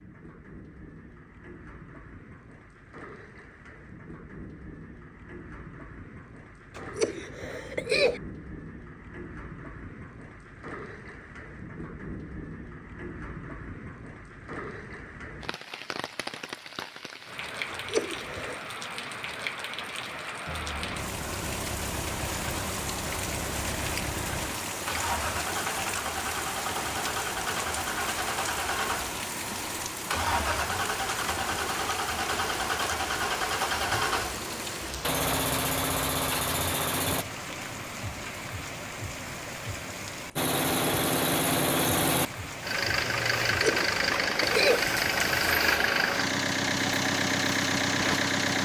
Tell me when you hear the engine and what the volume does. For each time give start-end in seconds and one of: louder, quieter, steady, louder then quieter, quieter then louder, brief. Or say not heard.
20.4-37.2 louder
40.4-48.6 steady.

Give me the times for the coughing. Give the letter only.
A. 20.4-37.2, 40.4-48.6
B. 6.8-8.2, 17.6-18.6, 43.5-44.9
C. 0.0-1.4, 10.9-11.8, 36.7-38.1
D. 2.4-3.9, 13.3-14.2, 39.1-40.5
B.